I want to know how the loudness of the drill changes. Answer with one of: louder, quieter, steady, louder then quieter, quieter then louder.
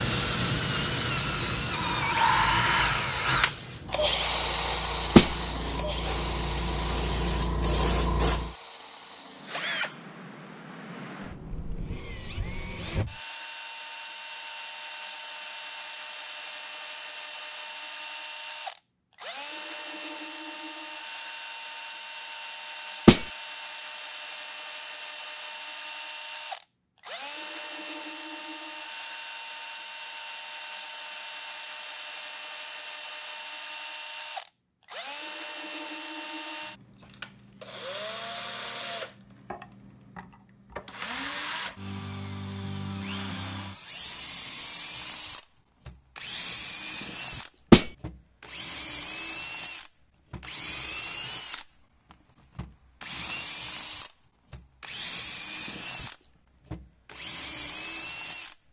quieter.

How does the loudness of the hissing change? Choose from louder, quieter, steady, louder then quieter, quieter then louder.
quieter then louder.